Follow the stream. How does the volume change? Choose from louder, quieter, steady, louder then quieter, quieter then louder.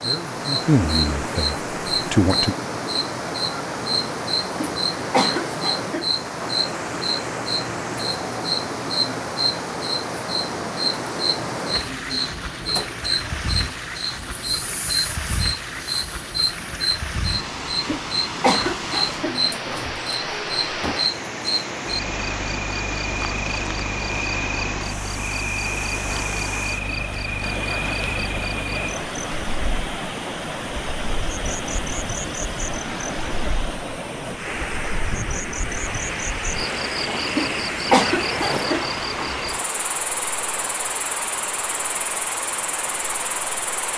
steady.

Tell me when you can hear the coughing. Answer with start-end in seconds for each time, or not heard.
4.5-6.6, 17.9-19.9, 37.4-39.4.